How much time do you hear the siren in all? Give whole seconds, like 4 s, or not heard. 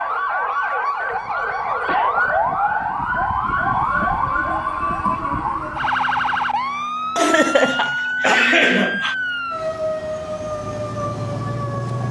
12 s.